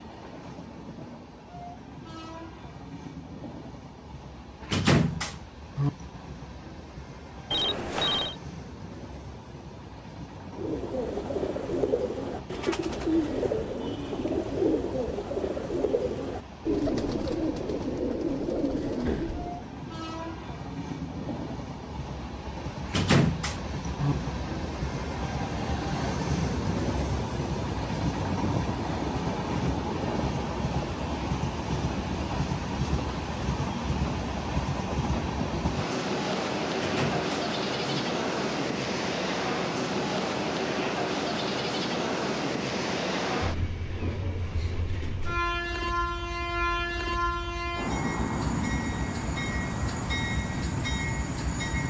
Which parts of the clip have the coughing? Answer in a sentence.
The coughing can't be heard in this clip.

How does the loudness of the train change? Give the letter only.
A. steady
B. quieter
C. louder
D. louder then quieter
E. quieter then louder
C.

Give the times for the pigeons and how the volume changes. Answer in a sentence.
The pigeons can be heard from 10.5 to 19.6 s, at a steady volume.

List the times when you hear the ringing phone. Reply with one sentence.
The ringing phone can be heard from 7.5 to 8.3 s.